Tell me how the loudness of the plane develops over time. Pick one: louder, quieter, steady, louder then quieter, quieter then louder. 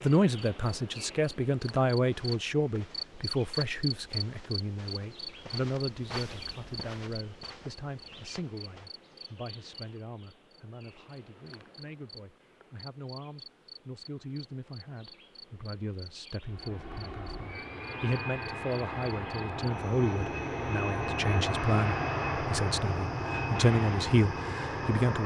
louder.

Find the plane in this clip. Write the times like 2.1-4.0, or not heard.
16.4-25.2.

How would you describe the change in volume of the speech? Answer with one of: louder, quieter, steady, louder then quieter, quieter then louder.
quieter then louder.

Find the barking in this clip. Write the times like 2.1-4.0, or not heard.
not heard.